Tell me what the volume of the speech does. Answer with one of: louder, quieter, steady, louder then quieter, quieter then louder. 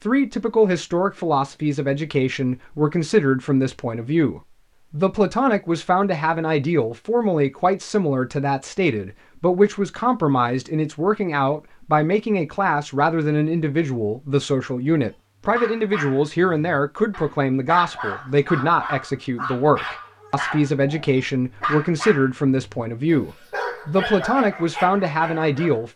steady.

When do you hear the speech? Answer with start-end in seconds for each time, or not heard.
0.0-25.9.